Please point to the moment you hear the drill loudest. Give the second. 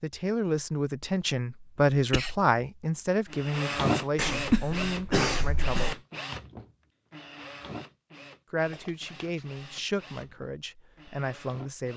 4 s.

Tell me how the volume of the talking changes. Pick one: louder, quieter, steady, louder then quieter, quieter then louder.
quieter.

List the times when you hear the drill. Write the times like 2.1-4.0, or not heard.
3.3-11.9.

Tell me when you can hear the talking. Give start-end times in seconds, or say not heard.
0.0-6.0, 8.5-11.9.